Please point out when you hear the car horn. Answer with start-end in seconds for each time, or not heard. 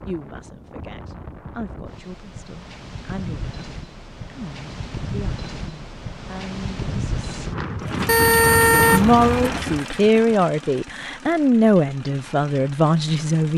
8.1-9.5.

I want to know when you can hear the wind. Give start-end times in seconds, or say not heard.
0.0-9.8.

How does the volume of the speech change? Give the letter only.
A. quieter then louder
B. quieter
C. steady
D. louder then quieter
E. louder
E.